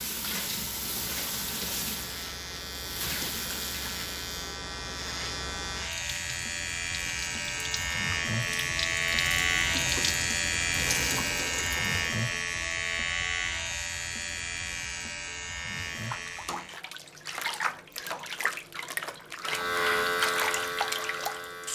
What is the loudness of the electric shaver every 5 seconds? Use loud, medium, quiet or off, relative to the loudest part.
medium, loud, loud, loud, loud.